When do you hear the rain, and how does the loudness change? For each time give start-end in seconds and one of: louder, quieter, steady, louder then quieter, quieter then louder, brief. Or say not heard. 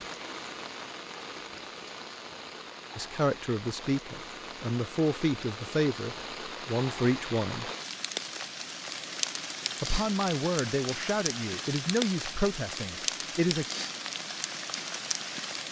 0.0-15.6 louder.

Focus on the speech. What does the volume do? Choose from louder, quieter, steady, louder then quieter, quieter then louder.
steady.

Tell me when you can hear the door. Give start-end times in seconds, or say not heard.
not heard.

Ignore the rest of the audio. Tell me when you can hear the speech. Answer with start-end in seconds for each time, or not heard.
3.0-7.7, 9.8-13.7.